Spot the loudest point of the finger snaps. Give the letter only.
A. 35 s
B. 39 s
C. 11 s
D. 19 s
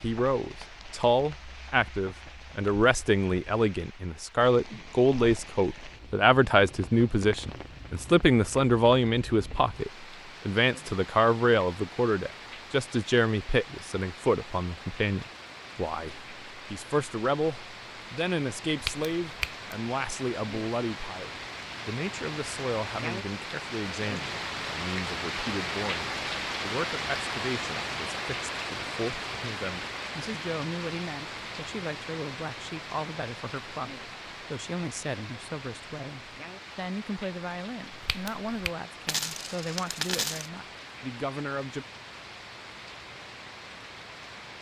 D.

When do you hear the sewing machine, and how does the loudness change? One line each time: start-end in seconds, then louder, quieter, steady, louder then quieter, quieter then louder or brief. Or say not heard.
not heard.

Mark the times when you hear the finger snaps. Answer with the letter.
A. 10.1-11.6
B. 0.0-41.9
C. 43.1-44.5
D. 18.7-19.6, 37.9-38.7
D.